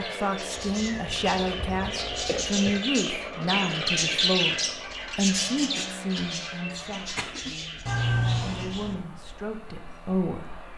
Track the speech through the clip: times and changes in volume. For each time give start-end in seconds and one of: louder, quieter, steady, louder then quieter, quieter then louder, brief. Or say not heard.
0.0-10.7 quieter then louder.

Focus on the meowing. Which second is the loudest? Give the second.
8 s.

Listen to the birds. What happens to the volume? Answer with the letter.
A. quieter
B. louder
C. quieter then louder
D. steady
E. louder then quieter
E.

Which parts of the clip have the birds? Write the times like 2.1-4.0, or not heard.
0.0-10.7.